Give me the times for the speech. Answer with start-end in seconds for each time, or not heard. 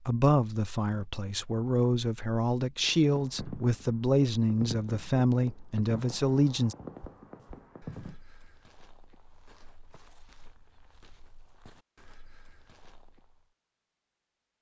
0.1-6.8.